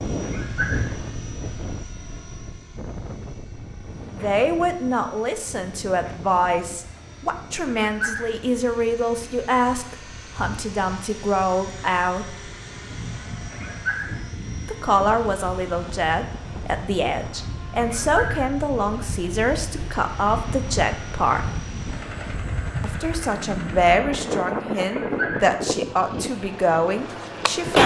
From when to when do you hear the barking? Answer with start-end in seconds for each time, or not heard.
0.2-0.9, 7.8-8.4, 13.5-14.2, 17.8-18.5, 25.0-25.6.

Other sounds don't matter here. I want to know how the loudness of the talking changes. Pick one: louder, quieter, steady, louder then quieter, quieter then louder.
steady.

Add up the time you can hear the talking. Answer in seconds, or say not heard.
20 s.